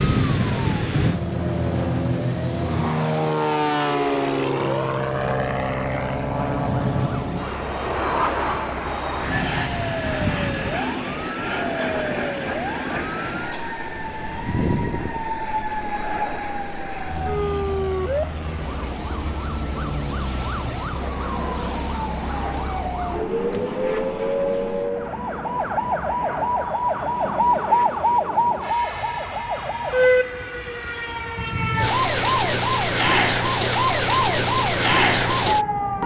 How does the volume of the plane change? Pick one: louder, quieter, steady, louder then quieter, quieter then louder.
quieter.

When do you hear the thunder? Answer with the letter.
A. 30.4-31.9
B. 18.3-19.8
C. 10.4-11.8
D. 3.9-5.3
A.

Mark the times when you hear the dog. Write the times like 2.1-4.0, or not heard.
not heard.